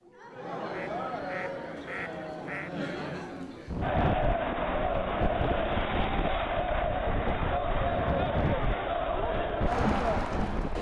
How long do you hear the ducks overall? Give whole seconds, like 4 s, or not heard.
2 s.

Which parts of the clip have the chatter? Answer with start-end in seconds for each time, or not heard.
0.0-10.7.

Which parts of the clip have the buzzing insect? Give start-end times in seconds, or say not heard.
not heard.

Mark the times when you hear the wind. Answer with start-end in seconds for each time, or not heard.
3.6-10.7.